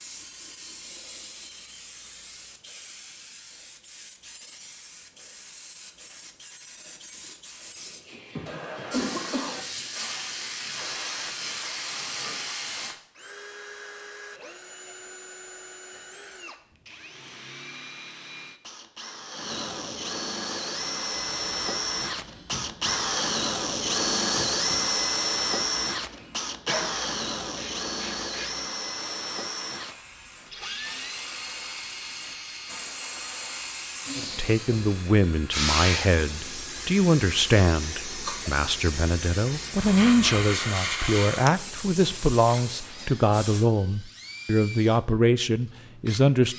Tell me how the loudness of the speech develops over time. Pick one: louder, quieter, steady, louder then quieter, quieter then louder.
steady.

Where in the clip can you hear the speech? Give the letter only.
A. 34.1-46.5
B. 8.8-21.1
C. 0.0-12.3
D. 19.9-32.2
A.